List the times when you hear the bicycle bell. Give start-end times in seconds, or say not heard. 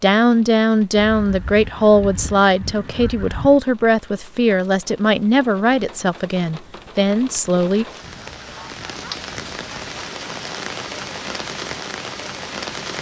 not heard.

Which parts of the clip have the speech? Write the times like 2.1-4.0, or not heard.
0.0-7.8.